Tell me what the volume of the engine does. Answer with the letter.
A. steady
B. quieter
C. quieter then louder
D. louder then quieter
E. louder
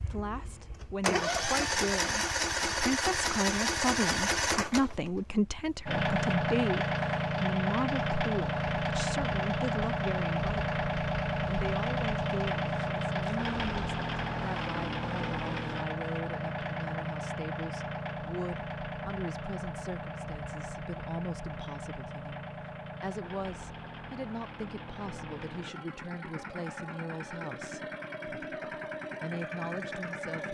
B.